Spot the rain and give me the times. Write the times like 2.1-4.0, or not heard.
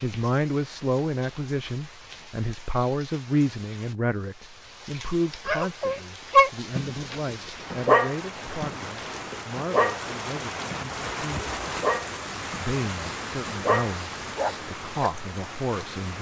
0.0-16.1.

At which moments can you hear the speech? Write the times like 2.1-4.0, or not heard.
0.0-11.5, 12.5-16.1.